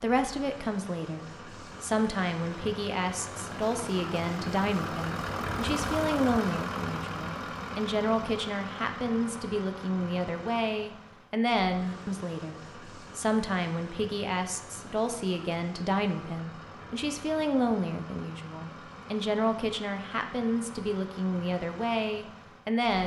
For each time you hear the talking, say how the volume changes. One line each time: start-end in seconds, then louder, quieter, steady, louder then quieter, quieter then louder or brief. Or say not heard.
0.0-23.0 steady.